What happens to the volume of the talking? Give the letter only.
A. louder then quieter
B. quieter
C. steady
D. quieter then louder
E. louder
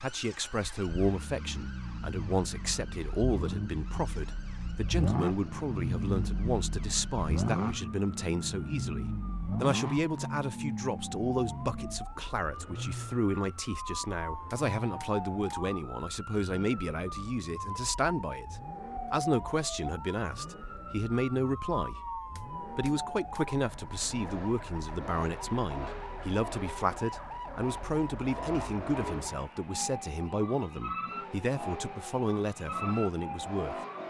C.